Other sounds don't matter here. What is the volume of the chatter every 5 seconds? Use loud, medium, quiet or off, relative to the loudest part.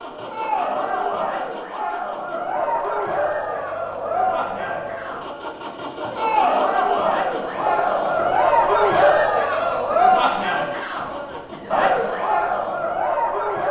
medium, loud, loud.